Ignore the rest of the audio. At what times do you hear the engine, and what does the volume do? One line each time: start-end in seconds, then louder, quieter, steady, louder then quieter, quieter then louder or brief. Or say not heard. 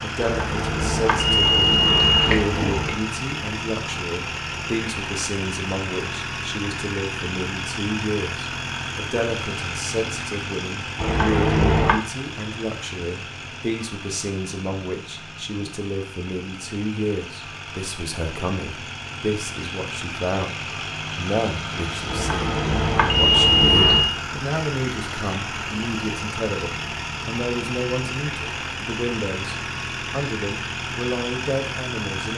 0.0-32.3 quieter then louder.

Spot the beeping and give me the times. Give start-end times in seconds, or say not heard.
0.2-3.0, 10.9-12.0, 22.1-24.1.